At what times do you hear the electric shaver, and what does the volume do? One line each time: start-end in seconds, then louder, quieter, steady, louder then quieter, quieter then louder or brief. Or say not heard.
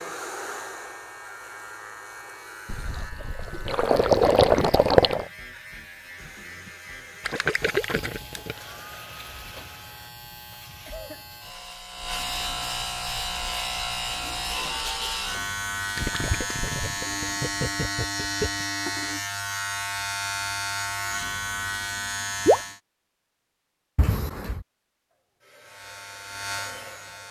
0.0-22.8 louder
25.6-27.2 brief.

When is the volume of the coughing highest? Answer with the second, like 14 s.
24 s.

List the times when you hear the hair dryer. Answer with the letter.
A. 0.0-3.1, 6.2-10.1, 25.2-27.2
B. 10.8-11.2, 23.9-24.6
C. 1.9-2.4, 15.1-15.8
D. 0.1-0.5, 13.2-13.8
A.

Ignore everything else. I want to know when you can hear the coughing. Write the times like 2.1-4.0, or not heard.
10.8-11.2, 23.9-24.6.